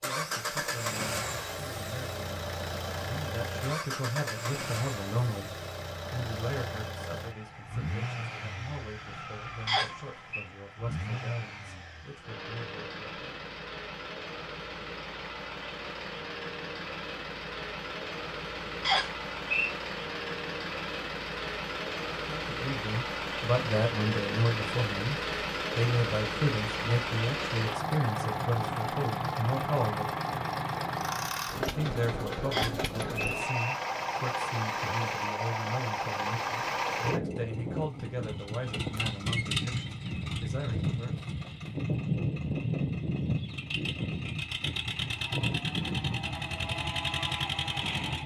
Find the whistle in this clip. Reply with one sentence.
The whistle can be heard from 9.7 to 10.4 s, from 18.8 to 19.7 s and from 32.5 to 33.8 s.